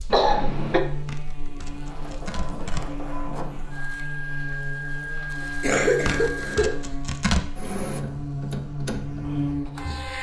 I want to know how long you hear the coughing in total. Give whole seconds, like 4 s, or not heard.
2 s.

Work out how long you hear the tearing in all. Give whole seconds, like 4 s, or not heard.
3 s.